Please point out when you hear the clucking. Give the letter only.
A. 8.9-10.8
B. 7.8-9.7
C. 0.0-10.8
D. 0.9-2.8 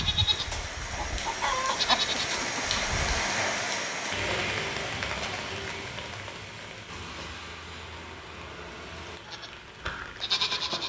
D.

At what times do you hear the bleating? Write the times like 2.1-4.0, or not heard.
0.0-3.2, 9.2-10.8.